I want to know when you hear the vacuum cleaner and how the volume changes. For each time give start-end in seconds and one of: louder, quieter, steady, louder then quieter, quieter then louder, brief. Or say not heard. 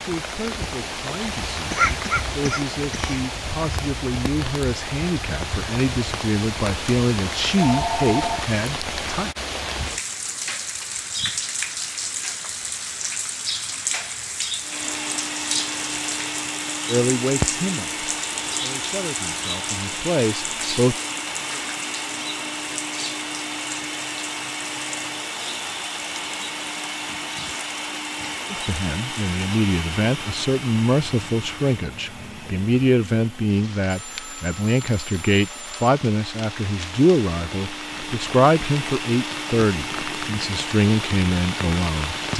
14.6-42.3 quieter then louder.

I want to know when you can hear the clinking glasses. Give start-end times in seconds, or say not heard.
not heard.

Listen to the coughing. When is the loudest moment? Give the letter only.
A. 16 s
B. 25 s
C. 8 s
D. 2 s
D.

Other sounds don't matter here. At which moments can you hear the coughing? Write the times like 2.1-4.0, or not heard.
1.7-3.2.